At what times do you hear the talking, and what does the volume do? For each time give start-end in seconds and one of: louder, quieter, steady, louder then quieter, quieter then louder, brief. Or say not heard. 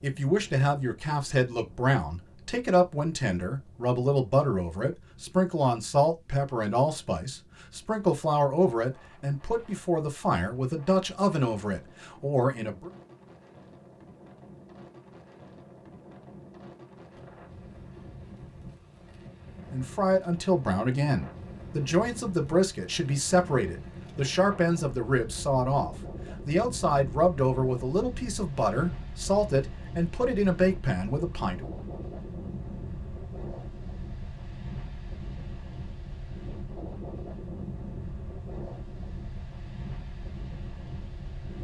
0.0-12.9 steady
19.7-31.6 steady.